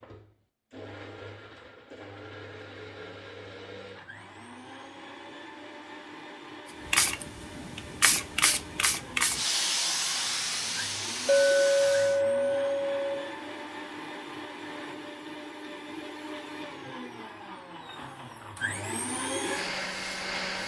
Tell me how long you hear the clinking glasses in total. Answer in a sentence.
The clinking glasses can be heard for 2 seconds in total.